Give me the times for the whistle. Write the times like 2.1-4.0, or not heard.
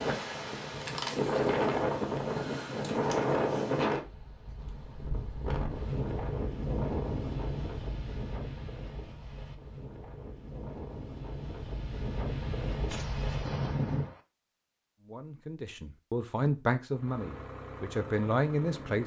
not heard.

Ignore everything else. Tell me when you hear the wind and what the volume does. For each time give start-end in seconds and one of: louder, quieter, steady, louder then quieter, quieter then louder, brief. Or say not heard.
0.0-14.1 quieter then louder.